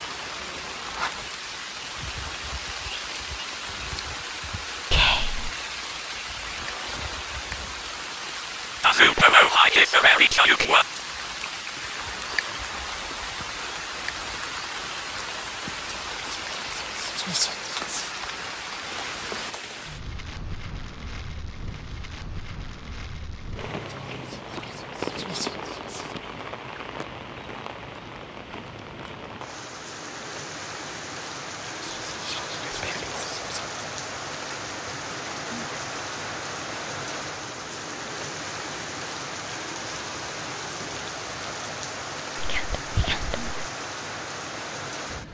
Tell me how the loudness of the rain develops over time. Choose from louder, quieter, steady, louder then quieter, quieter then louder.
steady.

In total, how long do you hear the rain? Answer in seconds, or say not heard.
45 s.